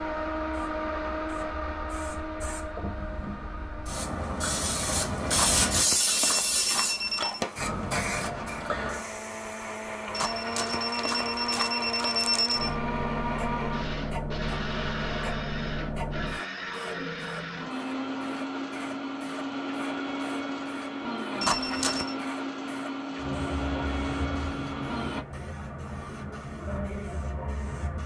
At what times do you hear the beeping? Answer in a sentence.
The beeping can be heard from 5.3 to 7.4 s, from 10.1 to 12.8 s and from 21.4 to 22.1 s.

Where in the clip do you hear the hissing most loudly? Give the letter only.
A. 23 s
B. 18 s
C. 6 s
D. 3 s
C.